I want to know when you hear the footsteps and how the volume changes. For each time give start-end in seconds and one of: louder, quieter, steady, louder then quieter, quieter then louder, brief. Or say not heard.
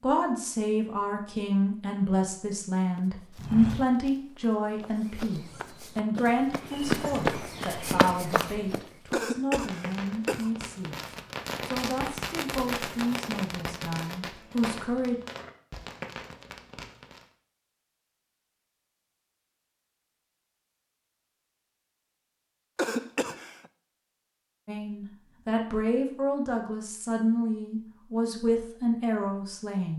3.0-9.2 quieter then louder.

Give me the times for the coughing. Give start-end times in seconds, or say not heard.
9.1-10.6, 22.8-23.6.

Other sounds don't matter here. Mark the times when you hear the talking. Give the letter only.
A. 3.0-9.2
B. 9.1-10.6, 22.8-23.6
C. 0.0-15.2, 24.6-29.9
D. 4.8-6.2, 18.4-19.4
C.